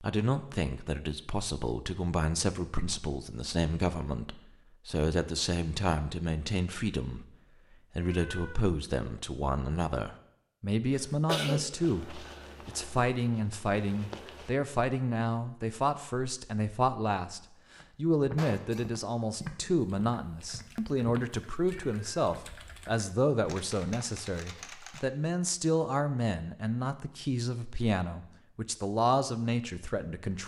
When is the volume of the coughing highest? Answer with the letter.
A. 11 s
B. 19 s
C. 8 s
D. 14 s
A.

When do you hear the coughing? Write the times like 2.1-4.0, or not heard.
10.9-11.7, 18.4-19.4.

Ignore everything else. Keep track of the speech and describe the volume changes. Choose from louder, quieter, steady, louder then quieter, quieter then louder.
steady.